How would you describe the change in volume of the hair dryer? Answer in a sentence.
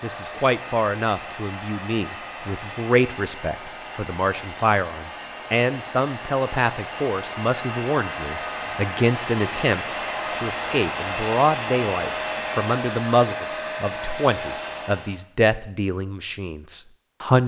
The volume of the hair dryer goes up.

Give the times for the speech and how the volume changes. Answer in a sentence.
You can hear the speech from 0.0 to 17.4 s, at a steady volume.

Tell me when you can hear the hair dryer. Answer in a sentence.
The hair dryer can be heard from 0.0 to 15.2 s.